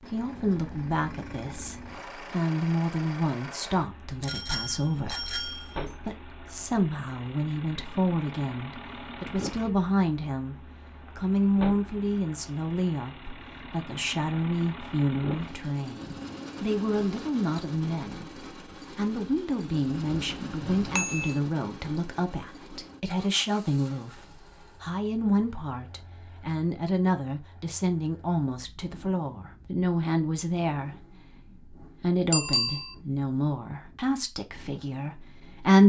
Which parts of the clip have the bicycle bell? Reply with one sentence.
You can hear the bicycle bell from 4.2 to 5.7 s, from 20.1 to 21.4 s and from 32.3 to 33.0 s.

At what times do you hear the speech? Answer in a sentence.
You can hear the speech from 0.0 to 35.8 s.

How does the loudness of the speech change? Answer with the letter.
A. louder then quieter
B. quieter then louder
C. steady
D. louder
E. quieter
C.